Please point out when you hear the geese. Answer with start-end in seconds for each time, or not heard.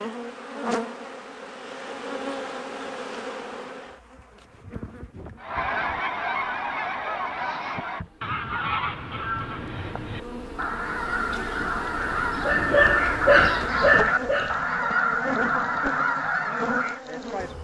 5.4-17.0.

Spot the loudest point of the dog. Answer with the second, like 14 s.
13 s.